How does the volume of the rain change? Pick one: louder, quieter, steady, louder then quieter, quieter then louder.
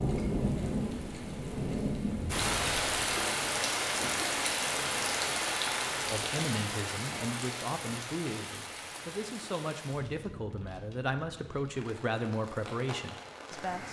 quieter.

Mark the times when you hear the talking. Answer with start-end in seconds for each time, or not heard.
6.1-13.8.